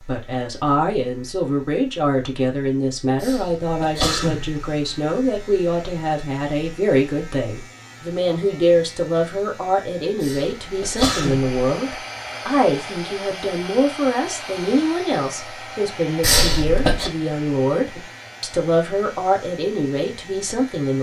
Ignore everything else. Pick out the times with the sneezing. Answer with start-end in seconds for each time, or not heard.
3.2-4.7, 10.2-11.5, 16.2-17.1.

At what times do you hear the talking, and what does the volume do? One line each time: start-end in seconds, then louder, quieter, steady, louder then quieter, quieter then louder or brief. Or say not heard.
0.0-20.9 steady.